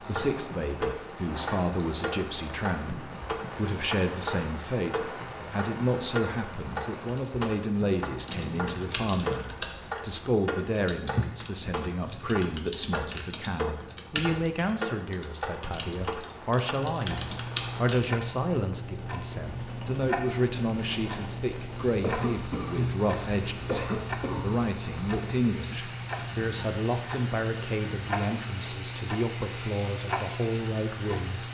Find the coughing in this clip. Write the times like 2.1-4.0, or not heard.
22.0-24.6.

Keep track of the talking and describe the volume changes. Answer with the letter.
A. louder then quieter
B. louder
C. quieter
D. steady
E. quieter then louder
D.